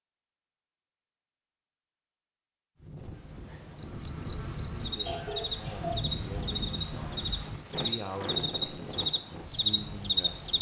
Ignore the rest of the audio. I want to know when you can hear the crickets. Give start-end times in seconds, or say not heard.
3.8-10.5.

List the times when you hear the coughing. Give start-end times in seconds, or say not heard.
4.9-6.0.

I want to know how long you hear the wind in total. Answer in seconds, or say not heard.
8 s.